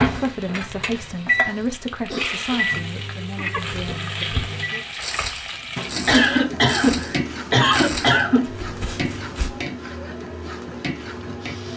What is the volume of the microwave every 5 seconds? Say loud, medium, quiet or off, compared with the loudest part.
loud, medium, medium.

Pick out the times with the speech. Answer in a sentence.
You can hear the speech from 0.0 to 4.8 s.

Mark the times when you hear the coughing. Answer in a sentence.
The coughing can be heard from 1.4 to 2.8 s and from 6.0 to 8.4 s.